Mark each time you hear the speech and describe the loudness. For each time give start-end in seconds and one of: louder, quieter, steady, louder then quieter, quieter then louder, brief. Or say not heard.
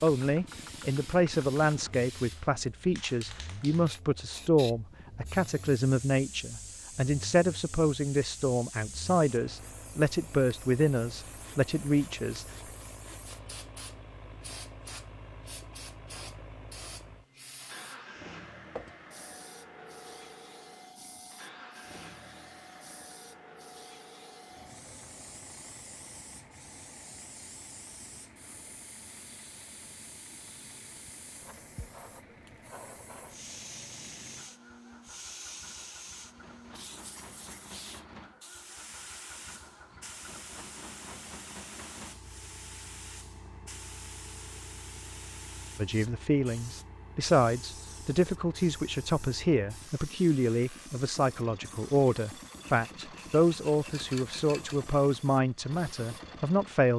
0.0-12.4 steady
45.8-56.9 steady.